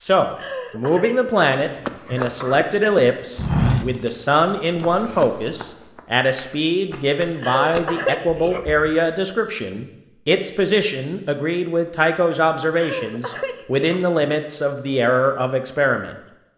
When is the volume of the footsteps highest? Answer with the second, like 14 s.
4 s.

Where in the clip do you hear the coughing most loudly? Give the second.
8 s.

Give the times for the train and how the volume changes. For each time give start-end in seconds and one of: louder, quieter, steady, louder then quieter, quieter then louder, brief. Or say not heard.
not heard.